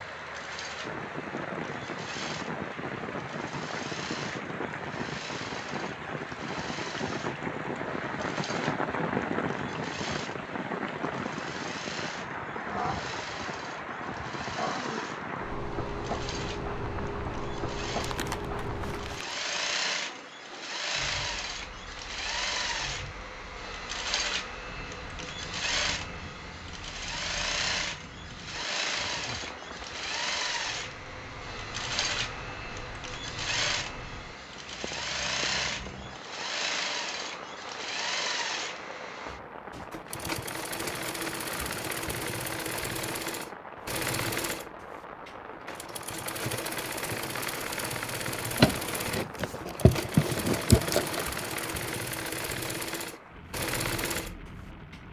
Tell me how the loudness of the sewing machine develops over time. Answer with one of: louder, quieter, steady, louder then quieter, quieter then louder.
louder.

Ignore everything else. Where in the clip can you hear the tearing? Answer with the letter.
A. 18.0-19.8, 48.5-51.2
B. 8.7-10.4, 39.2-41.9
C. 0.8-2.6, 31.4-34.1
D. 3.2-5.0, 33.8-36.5
A.